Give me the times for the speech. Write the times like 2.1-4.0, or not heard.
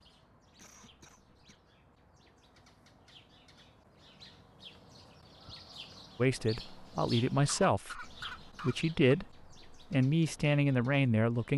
6.2-11.5.